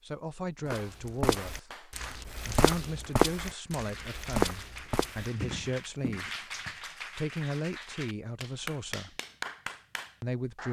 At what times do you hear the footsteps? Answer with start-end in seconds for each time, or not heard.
0.7-6.8.